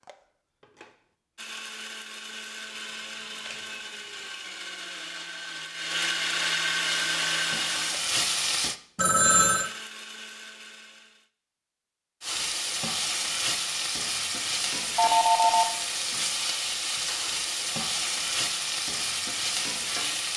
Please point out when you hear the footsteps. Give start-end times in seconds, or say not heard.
not heard.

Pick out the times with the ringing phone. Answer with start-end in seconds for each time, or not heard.
2.6-3.5, 8.9-9.7, 14.9-15.7.